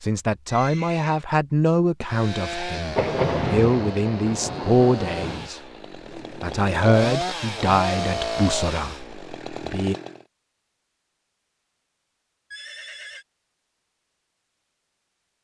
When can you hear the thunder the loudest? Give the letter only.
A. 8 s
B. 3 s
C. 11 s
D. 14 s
B.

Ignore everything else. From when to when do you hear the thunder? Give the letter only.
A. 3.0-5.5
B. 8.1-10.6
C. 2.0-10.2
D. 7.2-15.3
A.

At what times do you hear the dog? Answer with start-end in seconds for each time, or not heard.
not heard.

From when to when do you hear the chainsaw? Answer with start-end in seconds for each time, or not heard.
2.0-10.2.